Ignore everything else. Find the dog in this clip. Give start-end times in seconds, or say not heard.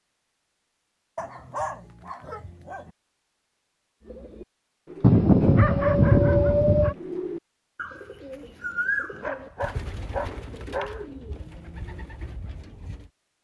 1.1-2.9, 5.0-7.0, 9.1-11.1.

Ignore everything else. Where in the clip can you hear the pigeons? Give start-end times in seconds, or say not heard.
4.0-13.1.